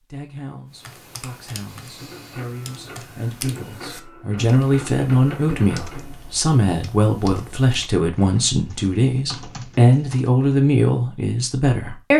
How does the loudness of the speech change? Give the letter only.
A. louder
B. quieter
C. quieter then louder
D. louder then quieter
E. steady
A.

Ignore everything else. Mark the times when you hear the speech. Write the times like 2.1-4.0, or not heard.
0.0-12.1.